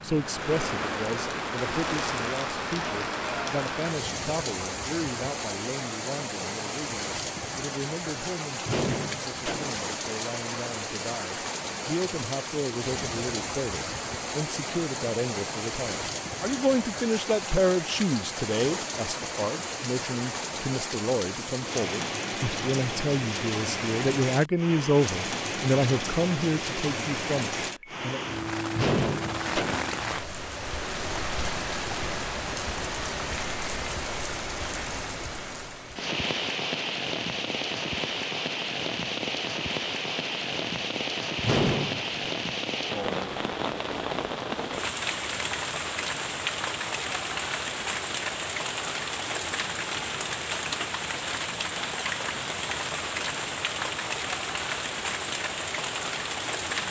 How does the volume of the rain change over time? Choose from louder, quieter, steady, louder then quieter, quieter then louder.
steady.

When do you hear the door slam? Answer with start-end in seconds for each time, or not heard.
8.7-9.8, 28.8-30.0, 41.4-42.2.